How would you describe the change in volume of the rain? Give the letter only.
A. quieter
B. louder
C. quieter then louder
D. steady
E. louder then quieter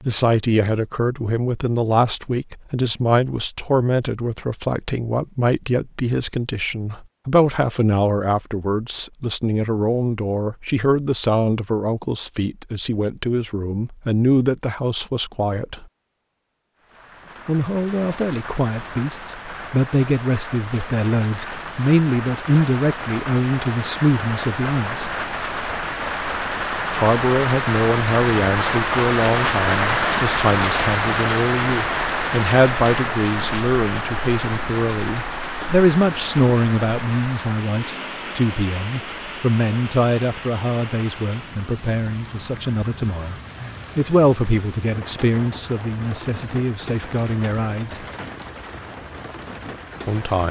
E.